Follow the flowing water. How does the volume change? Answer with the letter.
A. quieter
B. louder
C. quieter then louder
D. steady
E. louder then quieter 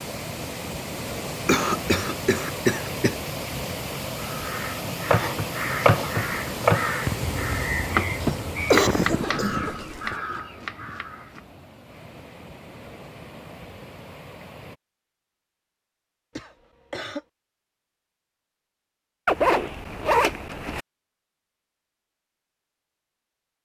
A.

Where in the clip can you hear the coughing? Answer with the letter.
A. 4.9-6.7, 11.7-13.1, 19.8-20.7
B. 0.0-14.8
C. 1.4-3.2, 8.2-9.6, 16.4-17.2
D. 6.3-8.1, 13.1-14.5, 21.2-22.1
C.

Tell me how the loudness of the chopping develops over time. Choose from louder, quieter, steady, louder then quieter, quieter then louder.
quieter.